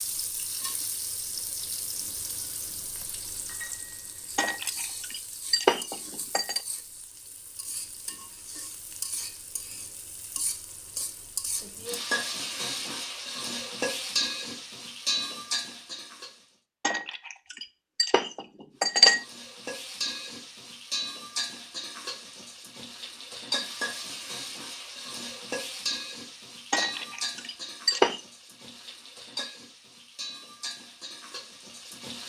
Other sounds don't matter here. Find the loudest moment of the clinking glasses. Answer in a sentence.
The loudest moment of the clinking glasses is at 19 seconds.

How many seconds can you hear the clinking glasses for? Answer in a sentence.
You can hear the clinking glasses for 6 seconds altogether.